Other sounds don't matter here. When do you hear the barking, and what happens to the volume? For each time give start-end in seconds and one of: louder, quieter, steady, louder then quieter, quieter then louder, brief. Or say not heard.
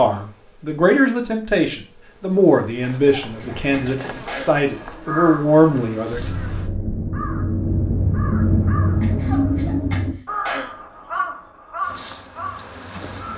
not heard.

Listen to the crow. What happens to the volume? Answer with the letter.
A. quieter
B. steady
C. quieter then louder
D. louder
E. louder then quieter
E.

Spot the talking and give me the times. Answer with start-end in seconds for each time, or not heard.
0.0-6.3.